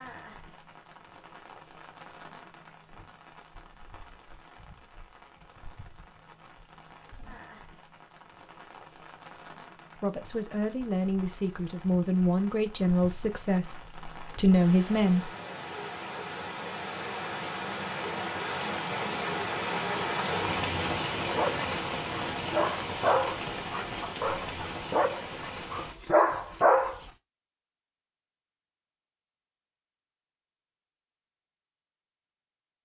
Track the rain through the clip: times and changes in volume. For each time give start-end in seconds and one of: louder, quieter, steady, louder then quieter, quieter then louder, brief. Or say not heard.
0.0-25.9 louder.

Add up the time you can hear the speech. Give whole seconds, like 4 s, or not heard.
5 s.